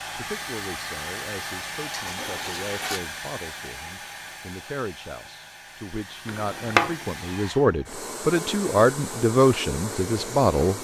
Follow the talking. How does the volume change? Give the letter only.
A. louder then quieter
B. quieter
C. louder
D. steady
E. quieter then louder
C.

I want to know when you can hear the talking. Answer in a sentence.
You can hear the talking from 0.0 to 10.7 s.